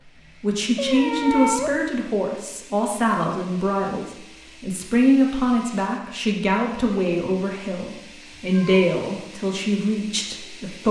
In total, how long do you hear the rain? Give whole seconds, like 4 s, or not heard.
not heard.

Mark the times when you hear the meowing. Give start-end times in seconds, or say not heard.
0.8-1.8, 8.3-8.9.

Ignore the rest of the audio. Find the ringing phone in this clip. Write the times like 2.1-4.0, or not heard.
not heard.